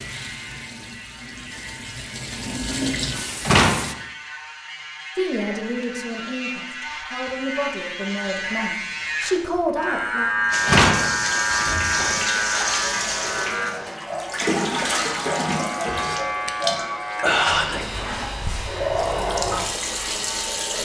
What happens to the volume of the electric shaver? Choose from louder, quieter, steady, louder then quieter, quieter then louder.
louder then quieter.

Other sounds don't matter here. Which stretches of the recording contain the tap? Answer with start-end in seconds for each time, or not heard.
0.0-4.0, 10.5-20.8.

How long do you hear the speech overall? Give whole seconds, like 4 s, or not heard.
5 s.